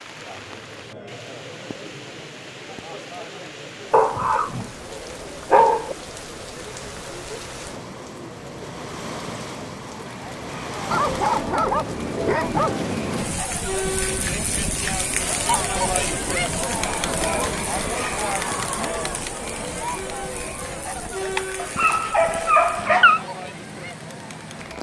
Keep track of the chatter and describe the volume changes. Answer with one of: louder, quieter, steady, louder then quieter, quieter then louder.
louder then quieter.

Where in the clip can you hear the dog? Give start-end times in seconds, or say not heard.
3.9-6.0, 10.9-12.8, 21.4-23.2.